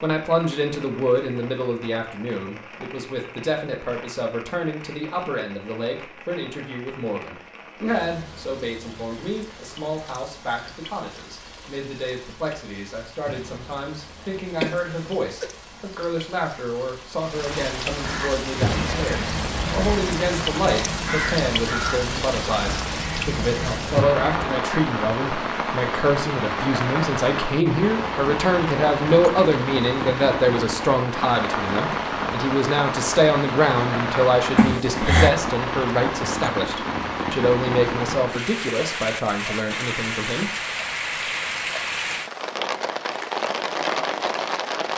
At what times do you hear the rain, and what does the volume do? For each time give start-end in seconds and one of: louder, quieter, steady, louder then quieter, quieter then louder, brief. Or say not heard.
0.0-44.9 louder.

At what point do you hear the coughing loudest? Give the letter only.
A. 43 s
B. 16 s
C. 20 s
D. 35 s
D.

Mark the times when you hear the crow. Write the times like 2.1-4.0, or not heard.
18.0-24.5.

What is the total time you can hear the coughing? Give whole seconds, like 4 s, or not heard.
2 s.